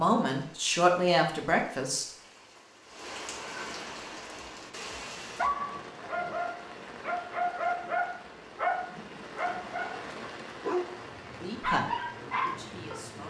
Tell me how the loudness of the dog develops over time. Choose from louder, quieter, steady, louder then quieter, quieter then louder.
steady.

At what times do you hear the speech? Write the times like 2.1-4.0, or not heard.
0.0-2.0, 11.2-13.2.